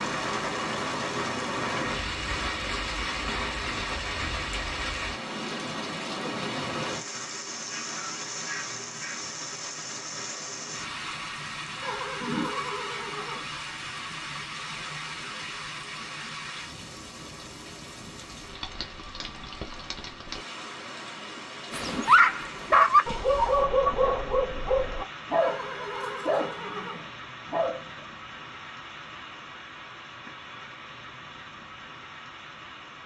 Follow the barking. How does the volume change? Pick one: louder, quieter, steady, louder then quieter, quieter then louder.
quieter.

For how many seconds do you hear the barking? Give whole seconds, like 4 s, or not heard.
6 s.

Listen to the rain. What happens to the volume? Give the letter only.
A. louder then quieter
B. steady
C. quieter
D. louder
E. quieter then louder
C.